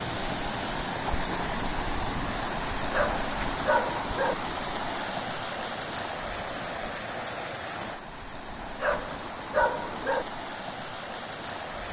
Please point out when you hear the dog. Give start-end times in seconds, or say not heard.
2.9-4.3, 8.8-10.2.